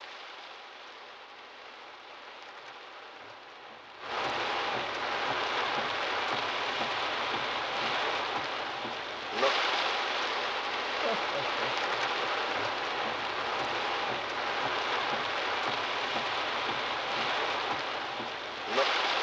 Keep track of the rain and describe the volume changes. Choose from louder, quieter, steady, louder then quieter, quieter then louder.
louder.